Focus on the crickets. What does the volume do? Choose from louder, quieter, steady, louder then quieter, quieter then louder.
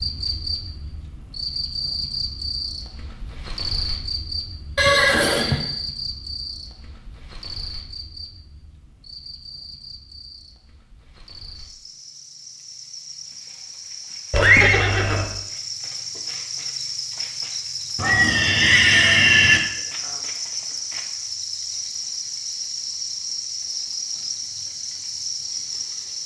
quieter then louder.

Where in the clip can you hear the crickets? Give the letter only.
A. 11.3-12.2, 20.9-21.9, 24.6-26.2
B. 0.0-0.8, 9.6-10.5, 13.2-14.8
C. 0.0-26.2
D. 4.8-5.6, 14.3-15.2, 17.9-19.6
C.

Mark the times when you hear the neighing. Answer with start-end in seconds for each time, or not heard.
4.8-5.6, 14.3-15.2, 17.9-19.6.